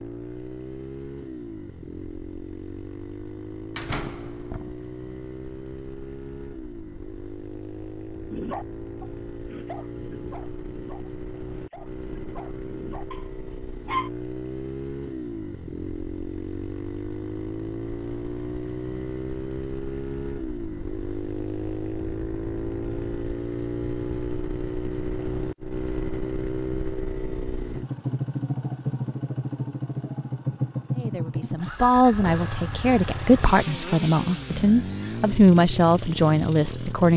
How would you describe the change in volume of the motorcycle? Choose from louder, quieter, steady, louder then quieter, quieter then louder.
louder.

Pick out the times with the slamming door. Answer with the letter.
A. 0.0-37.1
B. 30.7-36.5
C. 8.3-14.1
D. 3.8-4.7
D.